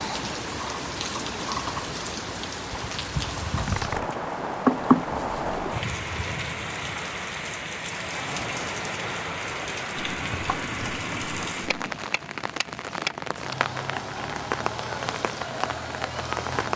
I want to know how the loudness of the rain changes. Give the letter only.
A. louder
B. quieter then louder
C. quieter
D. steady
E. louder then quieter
D.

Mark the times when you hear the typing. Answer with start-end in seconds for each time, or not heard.
3.6-4.1, 9.9-12.0.